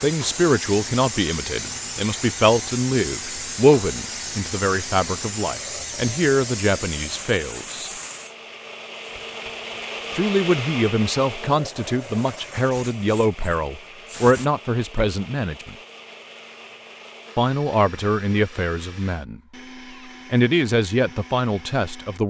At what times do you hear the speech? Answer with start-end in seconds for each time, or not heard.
0.0-7.9, 10.2-15.8, 17.4-19.4, 20.3-22.2.